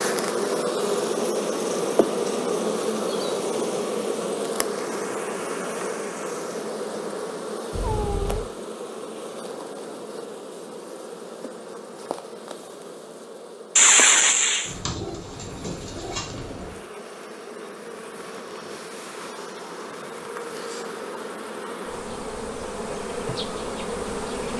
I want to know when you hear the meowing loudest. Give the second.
14 s.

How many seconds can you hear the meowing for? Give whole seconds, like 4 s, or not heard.
2 s.